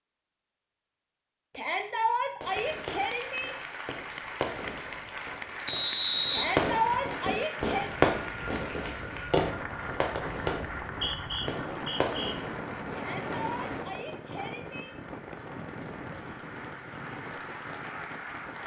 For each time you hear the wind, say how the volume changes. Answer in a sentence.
The wind can be heard from 7.5 to 18.6 s, getting louder then quieter.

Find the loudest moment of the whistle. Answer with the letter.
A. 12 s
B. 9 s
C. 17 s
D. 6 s
D.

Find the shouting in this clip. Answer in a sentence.
The shouting can be heard from 1.6 to 3.5 s, from 6.3 to 7.9 s and from 12.9 to 14.9 s.